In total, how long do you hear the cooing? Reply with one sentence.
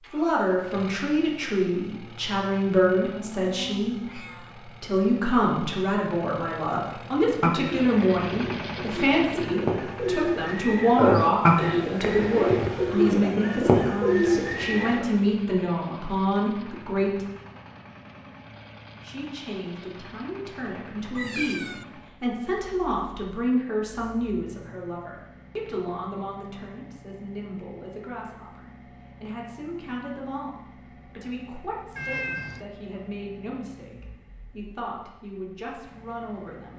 You can hear the cooing for 8 seconds altogether.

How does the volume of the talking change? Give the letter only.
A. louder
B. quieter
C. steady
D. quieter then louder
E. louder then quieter
B.